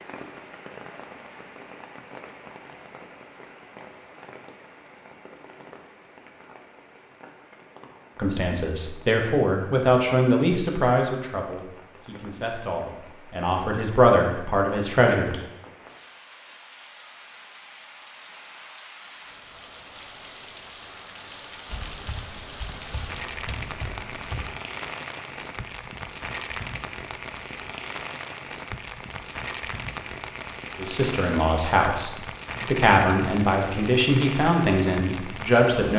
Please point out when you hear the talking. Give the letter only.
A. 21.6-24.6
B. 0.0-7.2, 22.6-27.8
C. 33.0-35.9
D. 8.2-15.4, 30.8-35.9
D.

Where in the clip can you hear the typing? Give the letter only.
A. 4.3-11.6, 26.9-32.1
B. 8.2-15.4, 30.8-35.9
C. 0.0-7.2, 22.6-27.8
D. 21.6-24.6
D.